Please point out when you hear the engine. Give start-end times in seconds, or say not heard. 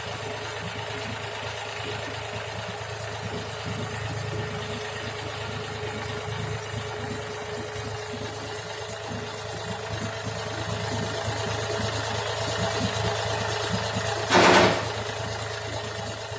0.0-16.3.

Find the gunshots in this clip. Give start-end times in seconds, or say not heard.
14.2-14.7.